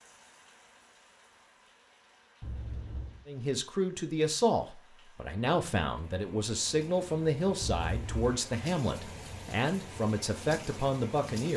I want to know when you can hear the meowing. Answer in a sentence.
You can hear the meowing from 2.4 to 3.2 s and from 7.6 to 8.3 s.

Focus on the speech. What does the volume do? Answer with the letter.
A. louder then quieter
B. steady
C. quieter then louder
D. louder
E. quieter
B.